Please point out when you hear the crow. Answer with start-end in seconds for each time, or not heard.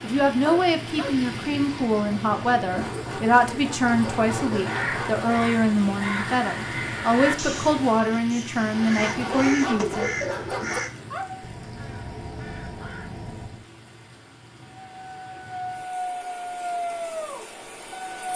4.5-13.7.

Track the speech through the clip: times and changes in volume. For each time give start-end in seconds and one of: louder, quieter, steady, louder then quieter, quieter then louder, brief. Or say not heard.
0.0-10.1 steady.